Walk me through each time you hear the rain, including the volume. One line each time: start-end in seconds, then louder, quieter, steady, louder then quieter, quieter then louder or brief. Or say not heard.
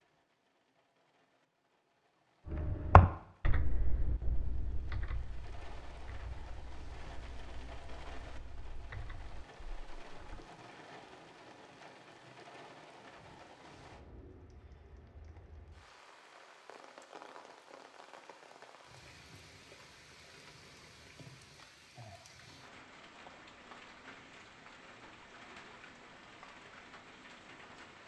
0.0-28.0 louder.